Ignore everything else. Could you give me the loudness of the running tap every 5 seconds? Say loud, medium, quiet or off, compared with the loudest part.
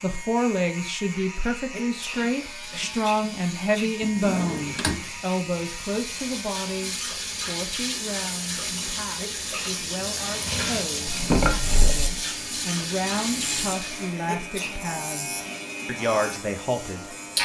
quiet, loud, loud, off.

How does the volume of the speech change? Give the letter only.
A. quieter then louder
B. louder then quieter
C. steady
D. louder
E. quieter
A.